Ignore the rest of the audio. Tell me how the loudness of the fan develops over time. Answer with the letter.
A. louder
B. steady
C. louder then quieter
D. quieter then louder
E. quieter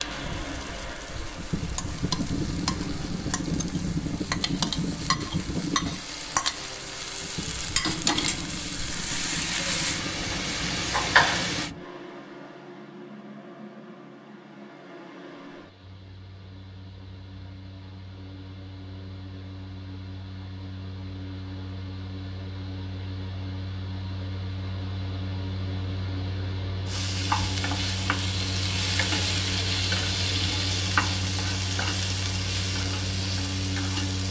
D.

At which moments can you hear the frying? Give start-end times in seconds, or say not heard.
0.0-11.7, 26.9-34.2.